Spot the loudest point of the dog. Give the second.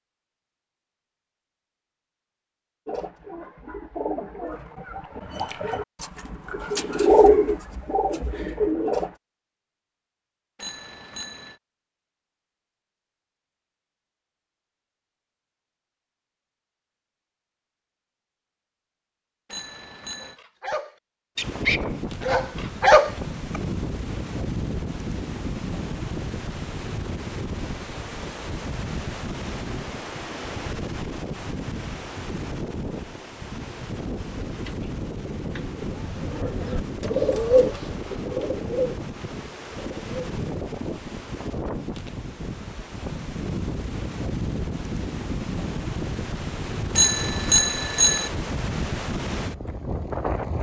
23 s.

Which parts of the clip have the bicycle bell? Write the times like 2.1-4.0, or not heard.
10.6-11.6, 19.5-20.4, 47.0-48.3.